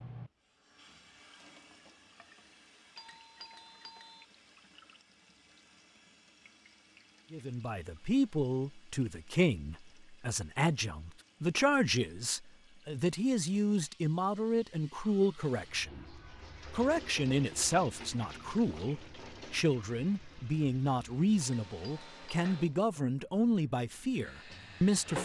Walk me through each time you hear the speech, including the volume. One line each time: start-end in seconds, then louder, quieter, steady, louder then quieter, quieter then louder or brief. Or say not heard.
7.3-25.1 steady.